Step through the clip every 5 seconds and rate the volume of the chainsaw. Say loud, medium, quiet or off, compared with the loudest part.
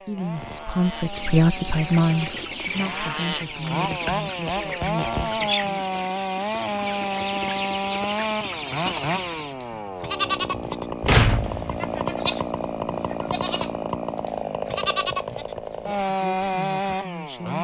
medium, loud, loud, loud.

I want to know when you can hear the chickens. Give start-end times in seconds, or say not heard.
1.0-9.6.